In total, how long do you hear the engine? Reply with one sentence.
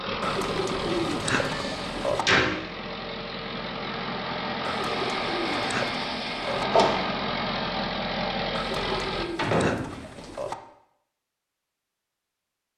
You can hear the engine for 9 seconds altogether.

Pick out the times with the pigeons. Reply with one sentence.
The pigeons can be heard from 0.2 to 2.2 s, from 4.6 to 6.7 s and from 8.5 to 10.6 s.